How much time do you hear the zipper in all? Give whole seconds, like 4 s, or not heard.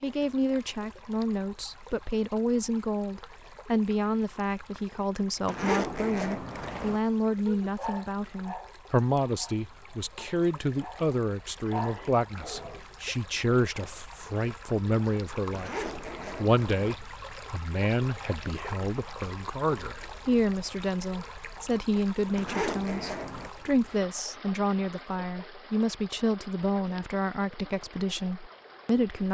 4 s.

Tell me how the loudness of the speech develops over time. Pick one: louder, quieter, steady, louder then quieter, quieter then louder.
steady.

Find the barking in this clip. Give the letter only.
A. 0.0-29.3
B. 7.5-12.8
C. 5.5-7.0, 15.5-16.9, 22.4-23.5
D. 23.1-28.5
B.